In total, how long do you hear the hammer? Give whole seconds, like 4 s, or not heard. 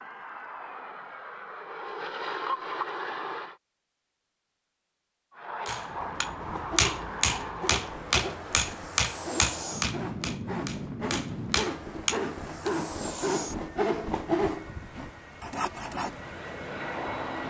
7 s.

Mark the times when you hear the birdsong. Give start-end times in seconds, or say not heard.
not heard.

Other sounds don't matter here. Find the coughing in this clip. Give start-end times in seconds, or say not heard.
not heard.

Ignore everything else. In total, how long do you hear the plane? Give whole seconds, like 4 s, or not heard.
16 s.